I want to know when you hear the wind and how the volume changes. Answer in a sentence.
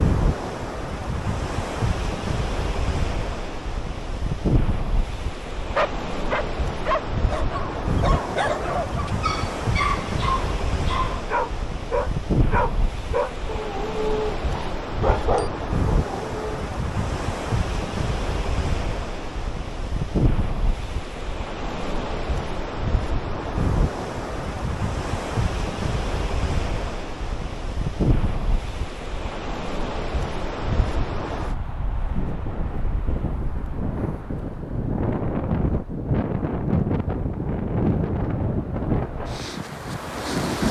The wind can be heard from 0.0 to 40.6 s, at a steady volume.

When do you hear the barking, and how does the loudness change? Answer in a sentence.
You can hear the barking from 5.8 to 16.4 s, at a steady volume.